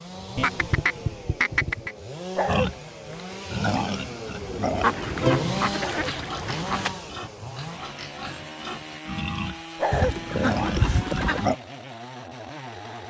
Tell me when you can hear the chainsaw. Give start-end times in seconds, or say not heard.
0.0-13.0.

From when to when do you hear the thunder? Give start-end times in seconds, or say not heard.
not heard.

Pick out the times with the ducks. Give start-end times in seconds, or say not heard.
0.3-1.9, 4.8-6.9, 9.9-11.5.